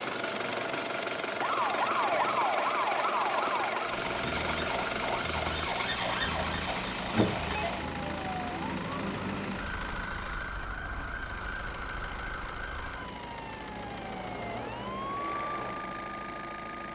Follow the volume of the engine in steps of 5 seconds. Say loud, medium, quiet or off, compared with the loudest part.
loud, loud, medium, medium.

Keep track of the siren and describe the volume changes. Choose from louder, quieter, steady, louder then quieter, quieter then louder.
quieter.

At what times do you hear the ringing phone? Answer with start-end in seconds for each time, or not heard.
7.1-7.8.